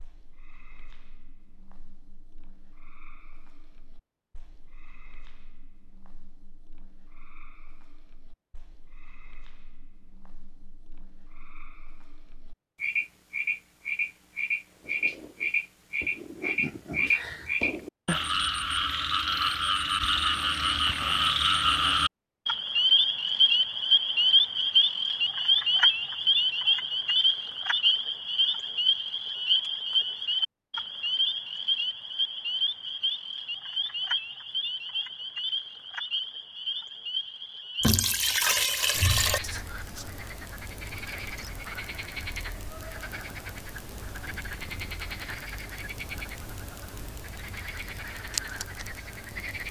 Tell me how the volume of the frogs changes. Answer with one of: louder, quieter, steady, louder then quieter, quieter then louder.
louder then quieter.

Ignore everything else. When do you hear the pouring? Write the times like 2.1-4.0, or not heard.
37.8-39.4.